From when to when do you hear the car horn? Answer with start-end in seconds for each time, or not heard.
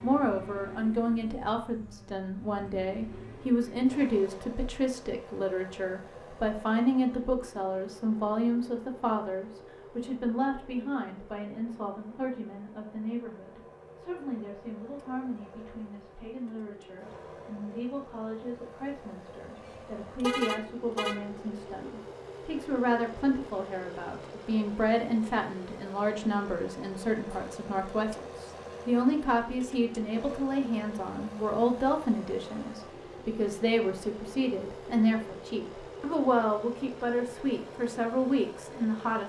19.6-21.2.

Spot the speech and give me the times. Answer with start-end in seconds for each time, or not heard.
0.0-39.2.